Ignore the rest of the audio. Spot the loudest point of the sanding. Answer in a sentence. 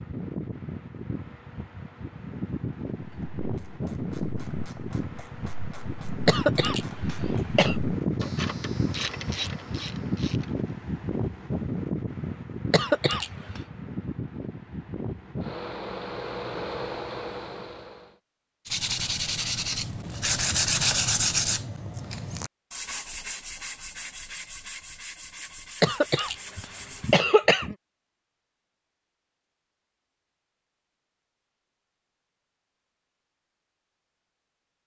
The volume of the sanding peaks at 21 seconds.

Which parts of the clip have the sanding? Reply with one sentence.
The sanding can be heard from 18.6 to 27.1 s.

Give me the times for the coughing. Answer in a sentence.
The coughing can be heard from 6.2 to 7.8 s, from 12.7 to 13.6 s and from 25.8 to 27.8 s.